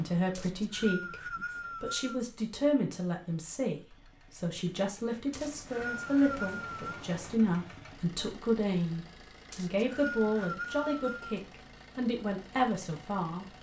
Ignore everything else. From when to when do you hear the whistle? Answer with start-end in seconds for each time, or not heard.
0.3-2.1, 5.3-7.0, 9.5-11.4.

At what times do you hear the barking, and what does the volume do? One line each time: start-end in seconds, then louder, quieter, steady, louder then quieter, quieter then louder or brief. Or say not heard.
not heard.